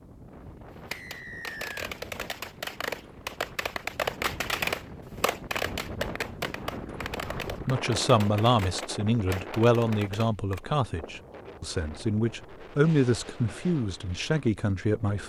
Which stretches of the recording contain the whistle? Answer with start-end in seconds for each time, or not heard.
0.9-1.8.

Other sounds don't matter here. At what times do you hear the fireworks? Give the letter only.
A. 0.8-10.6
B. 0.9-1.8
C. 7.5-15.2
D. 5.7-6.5
A.